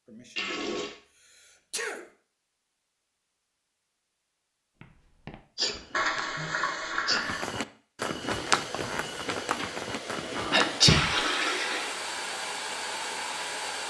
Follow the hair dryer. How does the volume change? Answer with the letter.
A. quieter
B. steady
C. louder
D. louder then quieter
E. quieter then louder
C.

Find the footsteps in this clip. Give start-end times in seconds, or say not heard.
4.8-11.1.